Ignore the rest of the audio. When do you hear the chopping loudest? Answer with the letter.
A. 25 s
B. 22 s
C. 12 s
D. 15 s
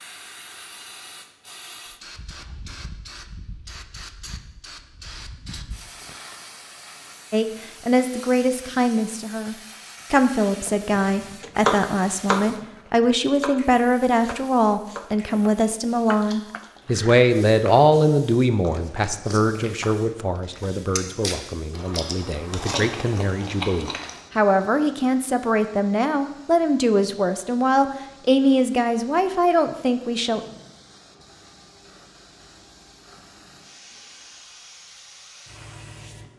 C.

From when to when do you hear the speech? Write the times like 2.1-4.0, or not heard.
7.3-30.4.